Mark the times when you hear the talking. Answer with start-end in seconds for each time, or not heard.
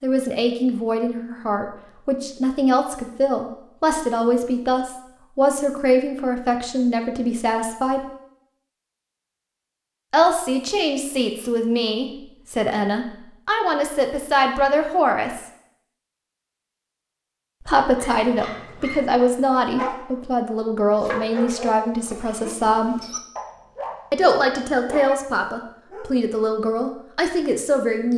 0.0-8.0, 10.1-15.4, 17.6-22.9, 24.1-28.1.